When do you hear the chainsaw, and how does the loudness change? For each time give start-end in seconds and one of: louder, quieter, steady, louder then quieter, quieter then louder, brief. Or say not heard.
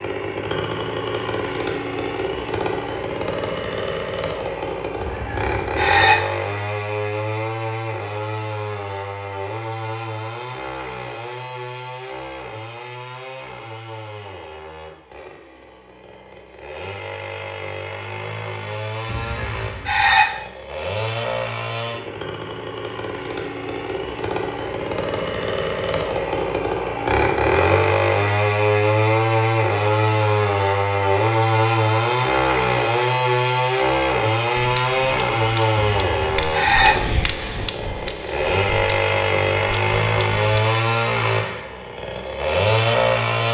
0.0-43.4 quieter then louder.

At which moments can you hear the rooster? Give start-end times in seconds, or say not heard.
5.0-6.2, 19.1-20.2, 35.8-37.0.